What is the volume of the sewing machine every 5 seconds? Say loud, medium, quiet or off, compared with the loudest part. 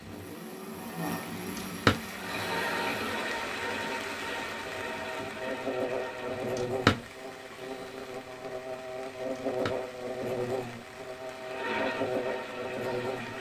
loud, medium, loud.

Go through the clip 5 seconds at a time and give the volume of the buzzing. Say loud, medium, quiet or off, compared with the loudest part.
medium, loud, loud.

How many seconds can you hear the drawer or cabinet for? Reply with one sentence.
You can hear the drawer or cabinet for 2 seconds altogether.